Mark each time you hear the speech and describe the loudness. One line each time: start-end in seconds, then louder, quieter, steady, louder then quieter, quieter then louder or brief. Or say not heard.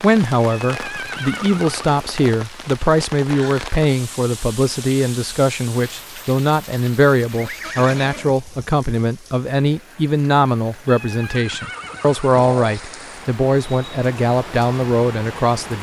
0.0-15.7 steady.